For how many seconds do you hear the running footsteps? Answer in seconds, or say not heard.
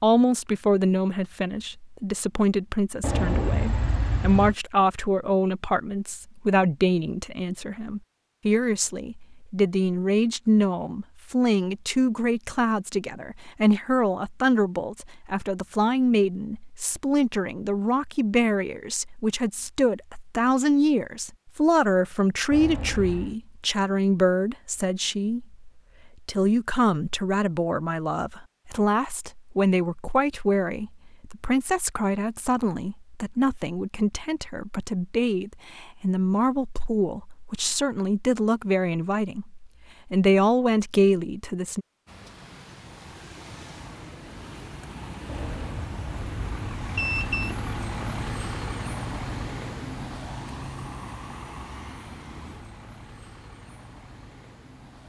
not heard.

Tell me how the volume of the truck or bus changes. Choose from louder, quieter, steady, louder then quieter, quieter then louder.
louder then quieter.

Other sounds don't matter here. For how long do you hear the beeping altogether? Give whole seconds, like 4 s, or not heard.
5 s.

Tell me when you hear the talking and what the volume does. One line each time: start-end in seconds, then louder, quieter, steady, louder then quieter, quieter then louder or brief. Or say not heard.
0.0-41.9 steady.